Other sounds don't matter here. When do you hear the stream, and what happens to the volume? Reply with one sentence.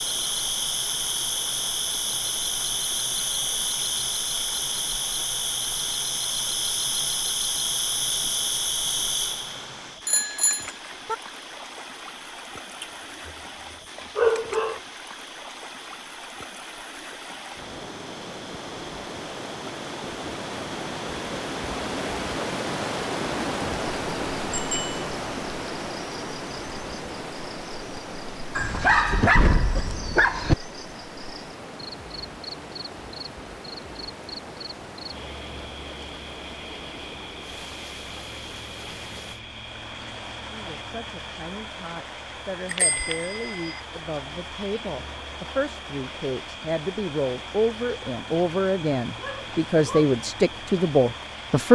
You can hear the stream from 0.0 to 51.7 s, getting louder then quieter.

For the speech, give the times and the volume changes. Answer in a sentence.
You can hear the speech from 40.4 to 51.7 s, getting louder.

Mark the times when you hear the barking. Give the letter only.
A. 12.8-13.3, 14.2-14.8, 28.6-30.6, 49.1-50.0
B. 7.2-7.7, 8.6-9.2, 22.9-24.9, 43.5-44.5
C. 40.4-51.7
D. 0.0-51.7
A.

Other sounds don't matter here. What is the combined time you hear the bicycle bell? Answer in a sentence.
The bicycle bell can be heard for 3 seconds in total.